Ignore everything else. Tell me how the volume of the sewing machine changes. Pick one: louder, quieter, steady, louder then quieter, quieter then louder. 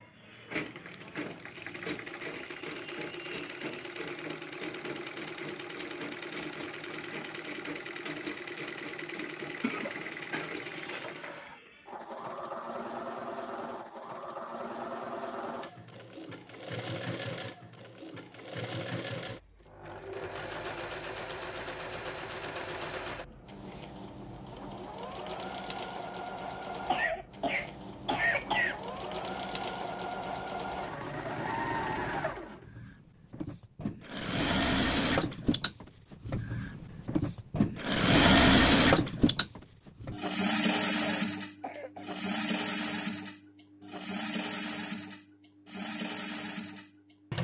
louder.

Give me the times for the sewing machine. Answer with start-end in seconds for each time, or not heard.
0.0-47.3.